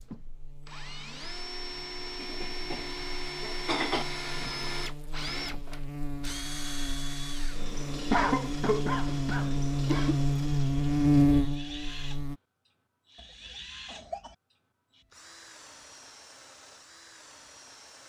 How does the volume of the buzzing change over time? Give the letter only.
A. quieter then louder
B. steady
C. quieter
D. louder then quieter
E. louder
E.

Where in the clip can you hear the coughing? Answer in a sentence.
The coughing can be heard from 2.1 to 4.0 s, from 8.1 to 10.2 s and from 13.2 to 14.3 s.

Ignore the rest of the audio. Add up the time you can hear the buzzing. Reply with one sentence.
The buzzing can be heard for 12 seconds in total.